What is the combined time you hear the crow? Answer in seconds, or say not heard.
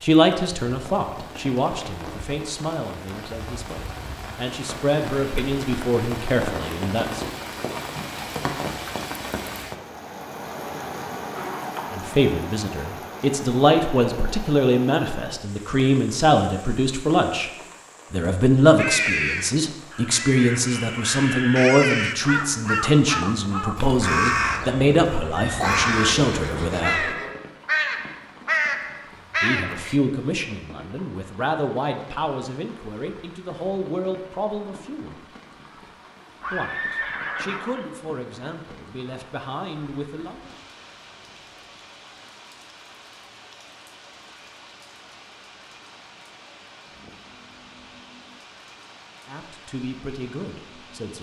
11 s.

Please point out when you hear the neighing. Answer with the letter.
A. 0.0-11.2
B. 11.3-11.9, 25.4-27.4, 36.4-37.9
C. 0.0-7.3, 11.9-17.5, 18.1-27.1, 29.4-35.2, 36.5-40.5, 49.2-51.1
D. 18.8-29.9
B.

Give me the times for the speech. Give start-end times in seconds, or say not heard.
0.0-7.3, 11.9-17.5, 18.1-27.1, 29.4-35.2, 36.5-40.5, 49.2-51.1.